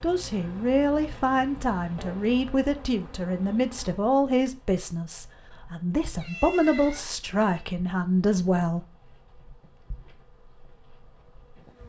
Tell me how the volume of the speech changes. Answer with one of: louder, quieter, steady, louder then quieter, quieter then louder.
steady.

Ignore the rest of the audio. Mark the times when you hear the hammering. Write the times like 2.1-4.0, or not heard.
not heard.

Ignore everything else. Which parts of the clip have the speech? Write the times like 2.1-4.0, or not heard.
0.0-8.8.